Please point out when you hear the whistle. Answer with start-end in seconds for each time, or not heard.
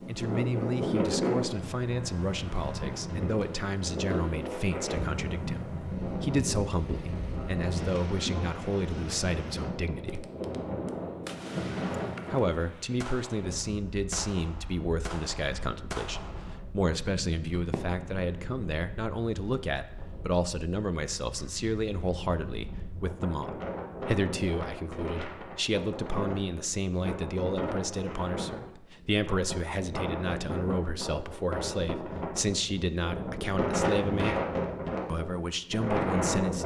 not heard.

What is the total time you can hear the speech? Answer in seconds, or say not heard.
34 s.